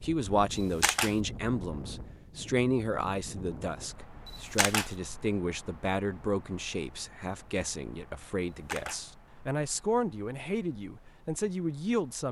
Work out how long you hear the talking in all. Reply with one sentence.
You can hear the talking for 12 seconds altogether.